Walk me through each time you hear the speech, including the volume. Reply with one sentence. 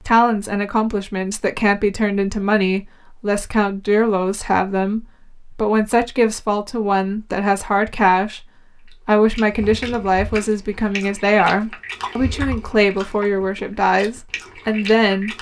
The speech can be heard from 0.1 to 15.3 s, at a steady volume.